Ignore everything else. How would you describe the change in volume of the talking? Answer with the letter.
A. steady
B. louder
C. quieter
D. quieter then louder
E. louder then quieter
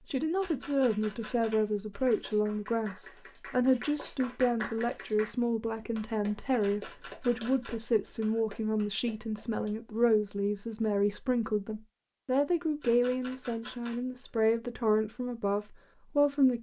A.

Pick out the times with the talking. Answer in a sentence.
The talking can be heard from 0.1 to 16.5 s.